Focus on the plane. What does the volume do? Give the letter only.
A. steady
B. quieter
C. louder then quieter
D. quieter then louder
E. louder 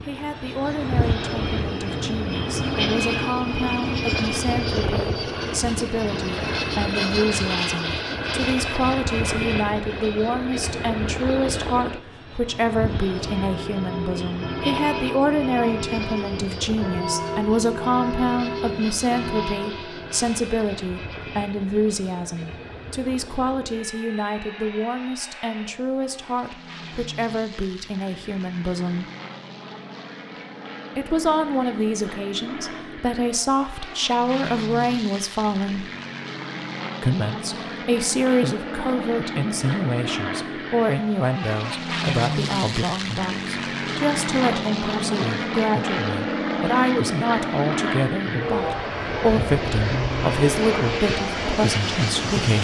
D.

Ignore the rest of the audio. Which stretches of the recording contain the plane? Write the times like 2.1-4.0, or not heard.
0.0-52.6.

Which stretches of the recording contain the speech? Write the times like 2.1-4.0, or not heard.
0.0-29.1, 30.9-35.9, 37.0-52.6.